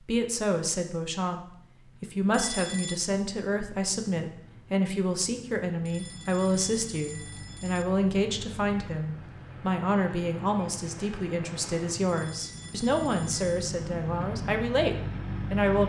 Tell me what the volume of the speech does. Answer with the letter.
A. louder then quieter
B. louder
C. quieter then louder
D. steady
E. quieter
D.